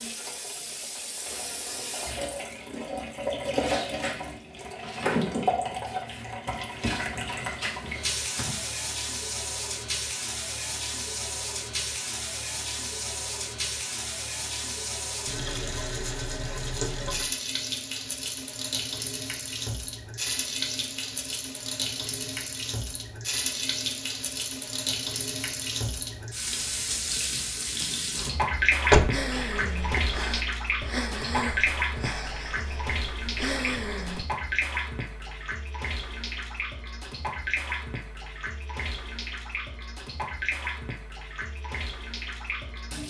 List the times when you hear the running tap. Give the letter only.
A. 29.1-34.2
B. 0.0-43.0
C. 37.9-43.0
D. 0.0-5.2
B.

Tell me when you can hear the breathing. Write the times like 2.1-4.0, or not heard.
29.1-34.2.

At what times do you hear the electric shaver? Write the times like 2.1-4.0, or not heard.
not heard.